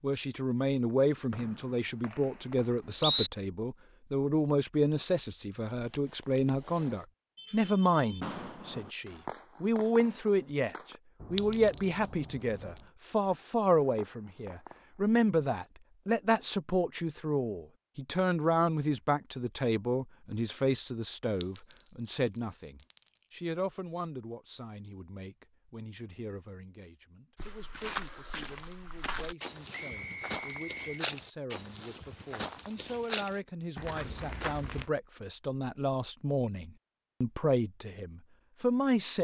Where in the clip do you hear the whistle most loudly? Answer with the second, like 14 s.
3 s.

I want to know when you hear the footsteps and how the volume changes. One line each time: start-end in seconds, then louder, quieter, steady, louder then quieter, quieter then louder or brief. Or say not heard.
27.4-34.9 steady.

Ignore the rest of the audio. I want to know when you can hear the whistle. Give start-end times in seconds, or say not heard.
1.3-3.3, 29.7-31.0.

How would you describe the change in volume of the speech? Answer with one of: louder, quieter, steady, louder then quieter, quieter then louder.
quieter then louder.